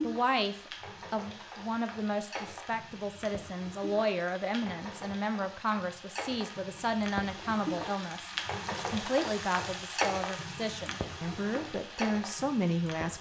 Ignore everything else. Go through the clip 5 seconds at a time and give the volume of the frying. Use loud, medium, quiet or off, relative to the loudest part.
medium, loud, loud.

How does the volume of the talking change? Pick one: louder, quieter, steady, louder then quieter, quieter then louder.
steady.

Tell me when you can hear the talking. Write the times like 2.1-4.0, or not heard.
0.0-13.1.